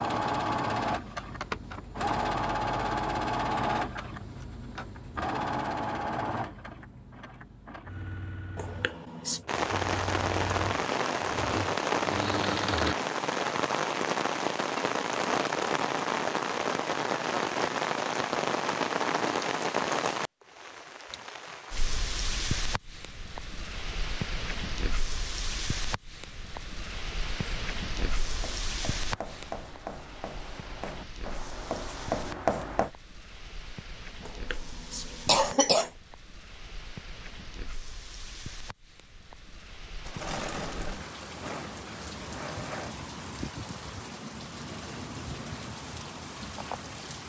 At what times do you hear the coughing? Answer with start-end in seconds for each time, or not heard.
8.6-9.4, 34.2-35.9.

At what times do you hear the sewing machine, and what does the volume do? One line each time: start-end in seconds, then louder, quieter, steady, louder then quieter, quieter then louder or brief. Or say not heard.
0.0-12.9 quieter then louder
40.0-43.0 brief.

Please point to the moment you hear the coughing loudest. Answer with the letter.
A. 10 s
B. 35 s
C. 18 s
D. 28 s
B.